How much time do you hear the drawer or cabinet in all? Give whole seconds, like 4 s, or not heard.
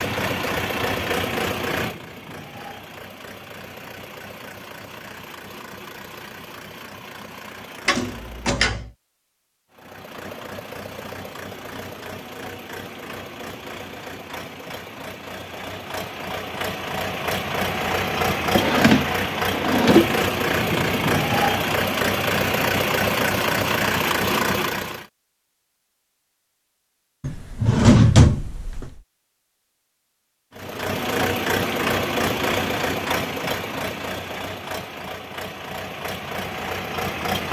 4 s.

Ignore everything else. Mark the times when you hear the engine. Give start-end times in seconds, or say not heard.
0.0-8.7, 9.7-25.1, 30.6-37.4.